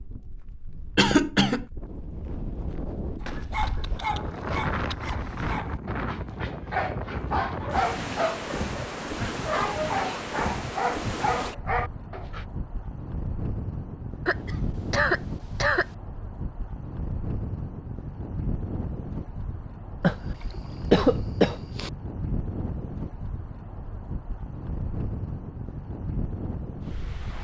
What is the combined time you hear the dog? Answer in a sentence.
You can hear the dog for 9 seconds altogether.